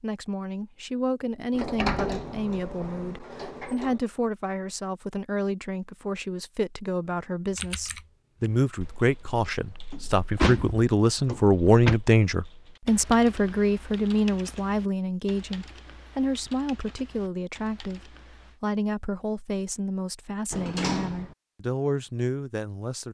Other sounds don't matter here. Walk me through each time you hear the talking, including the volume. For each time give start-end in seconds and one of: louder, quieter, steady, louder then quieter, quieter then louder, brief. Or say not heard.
0.0-23.1 louder then quieter.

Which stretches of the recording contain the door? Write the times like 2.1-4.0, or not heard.
1.5-4.0, 9.9-12.0, 20.5-21.4.